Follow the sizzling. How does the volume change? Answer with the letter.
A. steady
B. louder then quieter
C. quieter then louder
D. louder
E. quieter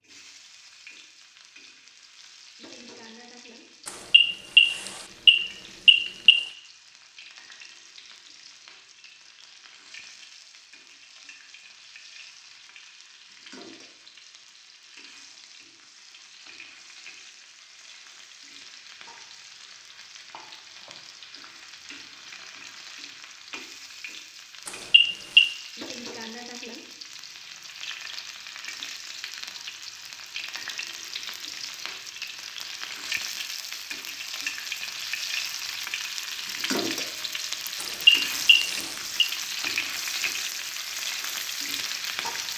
D.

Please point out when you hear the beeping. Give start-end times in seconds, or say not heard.
3.9-6.5, 24.6-25.5, 37.8-39.3.